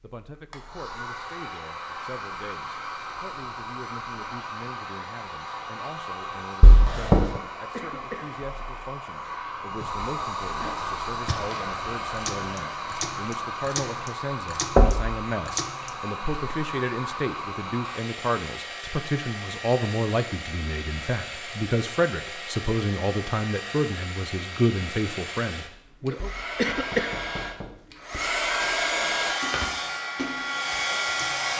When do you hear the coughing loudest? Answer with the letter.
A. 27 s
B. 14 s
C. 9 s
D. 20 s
A.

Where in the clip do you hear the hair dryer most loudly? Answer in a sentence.
The loudest moment of the hair dryer is at 29 seconds.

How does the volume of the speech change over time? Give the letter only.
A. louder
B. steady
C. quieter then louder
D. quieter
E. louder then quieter
A.